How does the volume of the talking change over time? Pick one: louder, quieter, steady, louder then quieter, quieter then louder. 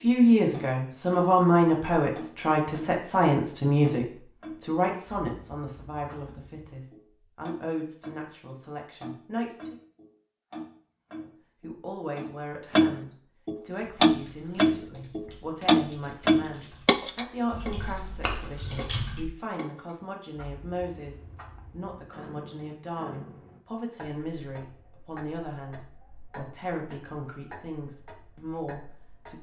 quieter.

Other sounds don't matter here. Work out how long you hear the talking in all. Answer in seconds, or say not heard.
28 s.